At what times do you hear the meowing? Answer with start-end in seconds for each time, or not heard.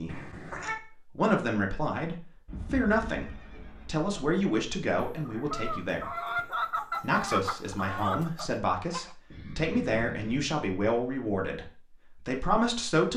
0.1-0.8.